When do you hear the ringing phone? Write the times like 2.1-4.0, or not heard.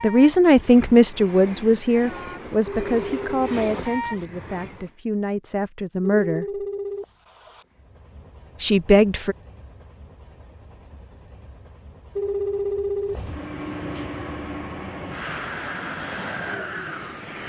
2.6-4.2, 6.0-7.7, 12.2-13.2.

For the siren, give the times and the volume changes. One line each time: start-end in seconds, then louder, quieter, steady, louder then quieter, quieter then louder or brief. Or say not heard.
not heard.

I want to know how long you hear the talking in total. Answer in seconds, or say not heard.
7 s.